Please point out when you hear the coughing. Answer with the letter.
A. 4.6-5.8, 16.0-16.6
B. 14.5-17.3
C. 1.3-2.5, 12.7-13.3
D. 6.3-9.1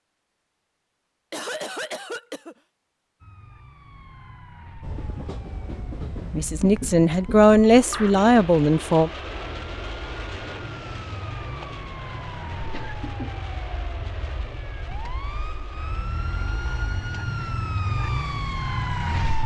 C.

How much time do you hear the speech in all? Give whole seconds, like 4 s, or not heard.
3 s.